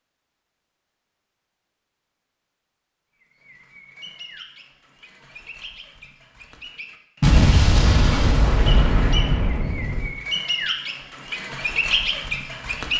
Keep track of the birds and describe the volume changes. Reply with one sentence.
The loudness of the birds goes up.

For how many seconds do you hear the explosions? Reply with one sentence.
You can hear the explosions for 3 seconds altogether.